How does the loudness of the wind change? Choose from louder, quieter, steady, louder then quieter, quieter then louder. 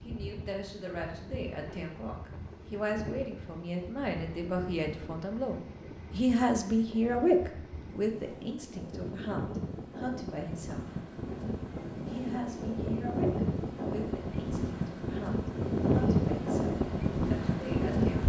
louder.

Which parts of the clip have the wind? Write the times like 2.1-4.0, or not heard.
0.0-18.2.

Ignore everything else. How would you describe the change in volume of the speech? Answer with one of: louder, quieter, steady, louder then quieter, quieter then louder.
louder then quieter.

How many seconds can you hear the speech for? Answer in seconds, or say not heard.
17 s.